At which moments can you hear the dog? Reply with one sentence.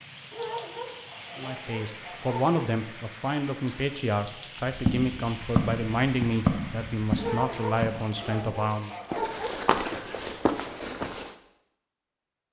You can hear the dog from 0.3 to 2.5 s and from 7.2 to 9.8 s.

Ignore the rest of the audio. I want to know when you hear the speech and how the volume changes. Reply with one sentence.
The speech can be heard from 1.4 to 9.0 s, at a steady volume.